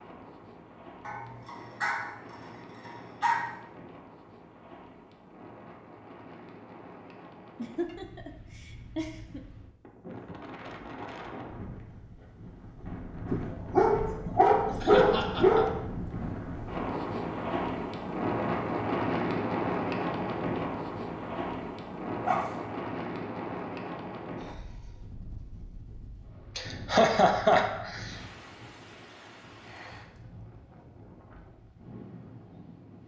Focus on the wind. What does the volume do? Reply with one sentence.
The loudness of the wind goes up, then down.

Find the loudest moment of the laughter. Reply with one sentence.
The volume of the laughter peaks at 27 seconds.